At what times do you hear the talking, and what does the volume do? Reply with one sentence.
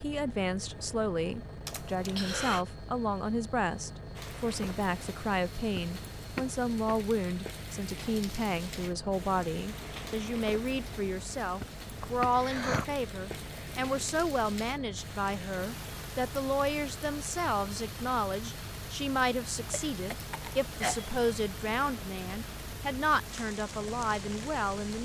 The talking can be heard from 0.0 to 24.9 s, at a steady volume.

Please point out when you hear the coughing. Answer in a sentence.
You can hear the coughing from 1.6 to 2.6 s, from 12.0 to 12.9 s and from 19.9 to 21.1 s.